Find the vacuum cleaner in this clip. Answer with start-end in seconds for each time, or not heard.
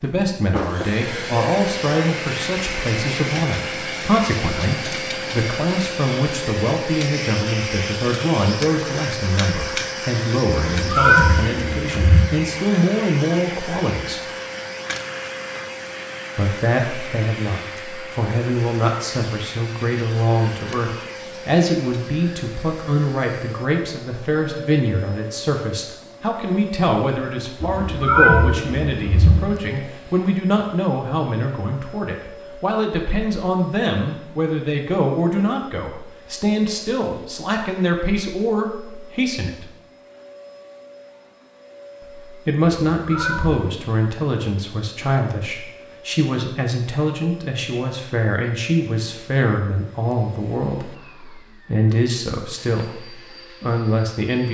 0.0-54.5.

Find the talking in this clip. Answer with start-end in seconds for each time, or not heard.
0.0-14.2, 16.4-39.6, 42.2-54.5.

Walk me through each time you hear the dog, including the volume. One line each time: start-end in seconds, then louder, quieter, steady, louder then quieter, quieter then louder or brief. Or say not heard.
not heard.